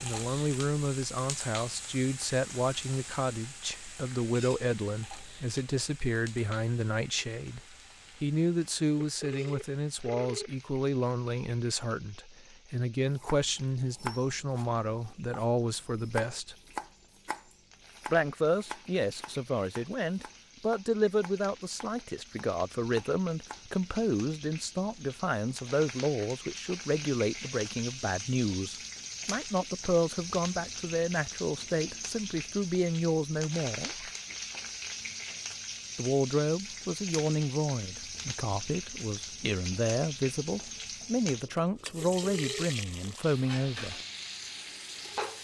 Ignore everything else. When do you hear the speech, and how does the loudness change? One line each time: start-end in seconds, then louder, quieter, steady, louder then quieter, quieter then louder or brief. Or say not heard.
0.0-16.6 steady
18.1-34.1 steady
36.0-44.0 quieter then louder.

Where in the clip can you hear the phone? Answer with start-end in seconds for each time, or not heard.
8.9-10.7, 42.0-43.1.